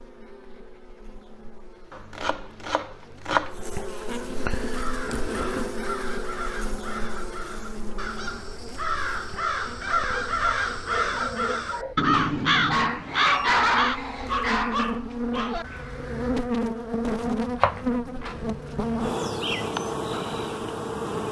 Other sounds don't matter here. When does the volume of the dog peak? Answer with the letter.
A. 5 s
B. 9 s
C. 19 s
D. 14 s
D.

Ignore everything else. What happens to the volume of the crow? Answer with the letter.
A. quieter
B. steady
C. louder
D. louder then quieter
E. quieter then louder
D.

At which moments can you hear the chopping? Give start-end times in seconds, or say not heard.
1.9-3.5, 17.2-18.6.